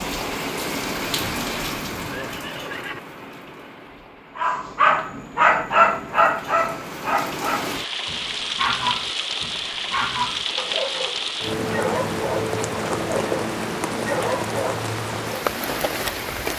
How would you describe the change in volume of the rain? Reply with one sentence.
The volume of the rain goes down, then up.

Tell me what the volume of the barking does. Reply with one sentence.
The volume of the barking goes down.